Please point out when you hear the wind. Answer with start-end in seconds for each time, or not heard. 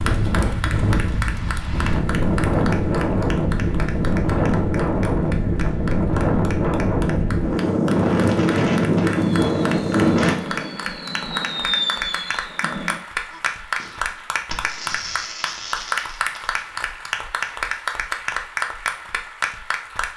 0.0-10.3.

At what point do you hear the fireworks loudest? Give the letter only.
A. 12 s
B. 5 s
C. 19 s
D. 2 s
A.